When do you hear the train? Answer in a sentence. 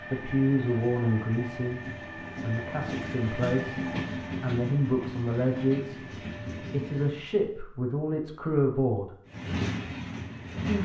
The train can be heard from 0.0 to 7.2 s and from 9.2 to 10.8 s.